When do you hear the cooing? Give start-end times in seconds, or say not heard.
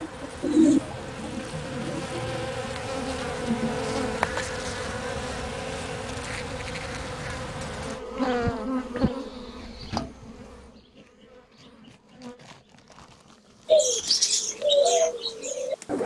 0.0-2.5, 13.7-16.0.